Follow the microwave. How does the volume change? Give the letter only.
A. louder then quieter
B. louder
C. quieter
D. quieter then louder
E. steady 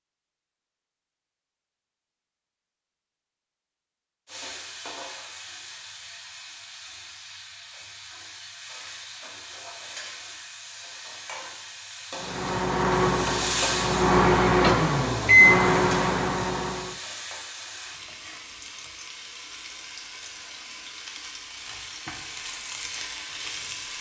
A.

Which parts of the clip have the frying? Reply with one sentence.
You can hear the frying from 4.2 to 23.9 s.